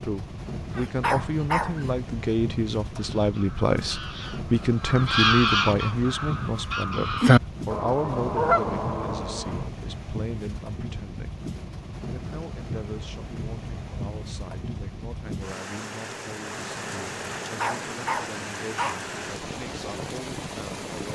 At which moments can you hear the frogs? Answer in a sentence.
You can't hear the frogs here.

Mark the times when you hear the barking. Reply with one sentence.
The barking can be heard from 0.8 to 1.9 s and from 17.4 to 19.1 s.